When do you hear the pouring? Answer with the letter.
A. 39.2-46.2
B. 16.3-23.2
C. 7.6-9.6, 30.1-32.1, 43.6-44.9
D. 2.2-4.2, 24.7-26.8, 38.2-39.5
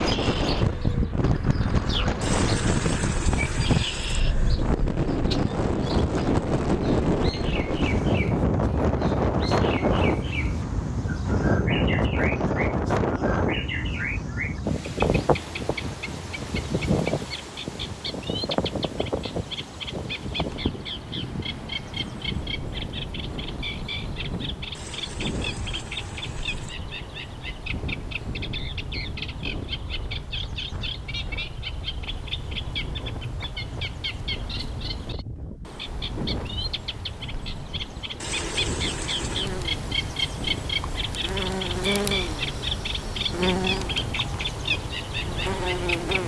D.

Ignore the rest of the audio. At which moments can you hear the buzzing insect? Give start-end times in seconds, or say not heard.
39.2-46.2.